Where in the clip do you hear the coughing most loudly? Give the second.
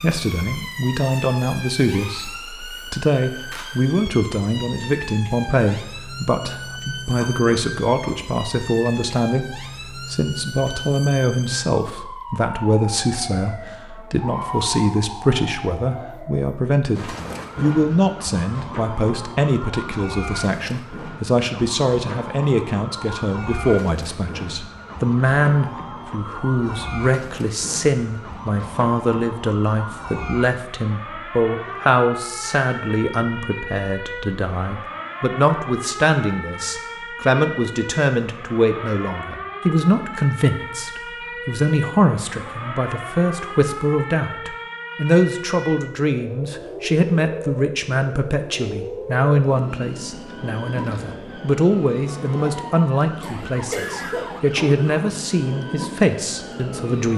54 s.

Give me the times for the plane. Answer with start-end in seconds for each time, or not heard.
not heard.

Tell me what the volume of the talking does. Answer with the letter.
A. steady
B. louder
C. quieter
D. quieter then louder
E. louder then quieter
A.